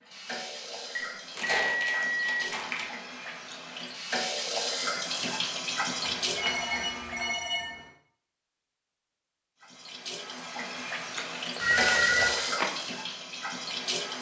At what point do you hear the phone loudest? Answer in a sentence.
The volume of the phone peaks at 12 seconds.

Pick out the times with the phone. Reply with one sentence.
You can hear the phone from 0.9 to 2.5 s, from 6.3 to 7.8 s and from 11.6 to 12.3 s.